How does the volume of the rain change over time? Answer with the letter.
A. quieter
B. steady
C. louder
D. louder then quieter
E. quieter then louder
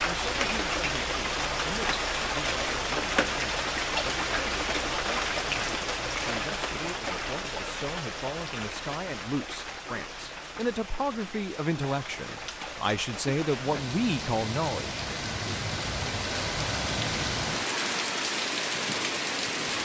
E.